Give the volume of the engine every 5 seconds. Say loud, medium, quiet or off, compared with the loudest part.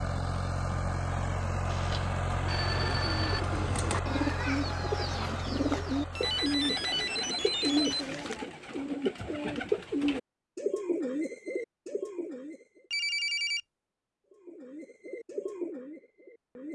loud, medium, off, off.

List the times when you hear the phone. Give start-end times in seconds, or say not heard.
1.6-3.4, 6.1-8.3, 12.9-13.6.